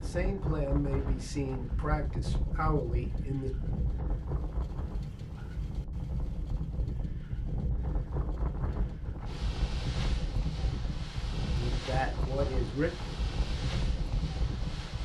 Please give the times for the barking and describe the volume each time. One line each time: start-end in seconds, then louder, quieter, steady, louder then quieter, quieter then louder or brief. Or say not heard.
not heard.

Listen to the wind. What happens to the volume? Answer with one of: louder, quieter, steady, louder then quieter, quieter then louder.
steady.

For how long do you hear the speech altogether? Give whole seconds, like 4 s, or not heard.
5 s.